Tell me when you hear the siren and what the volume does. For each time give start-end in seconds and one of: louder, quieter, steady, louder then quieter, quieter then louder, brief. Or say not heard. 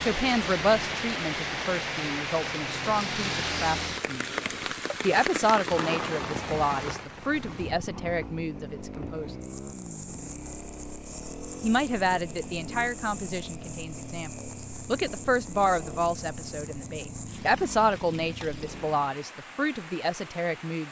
not heard.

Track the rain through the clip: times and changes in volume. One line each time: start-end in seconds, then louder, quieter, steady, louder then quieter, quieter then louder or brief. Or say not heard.
0.0-20.8 quieter.